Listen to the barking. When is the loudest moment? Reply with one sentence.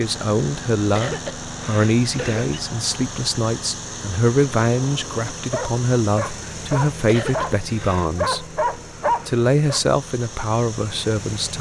The loudest moment of the barking is at 9 seconds.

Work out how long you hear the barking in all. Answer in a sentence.
You can hear the barking for 5 seconds altogether.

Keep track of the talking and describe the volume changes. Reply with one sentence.
The volume of the talking stays about the same.